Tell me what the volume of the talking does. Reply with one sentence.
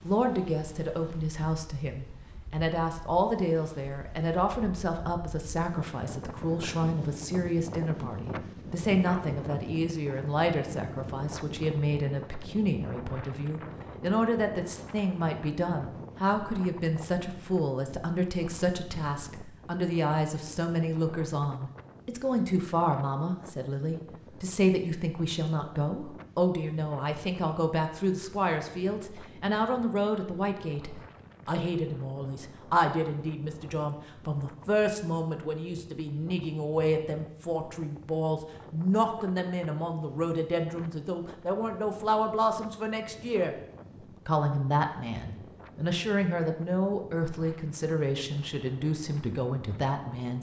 The volume of the talking stays about the same.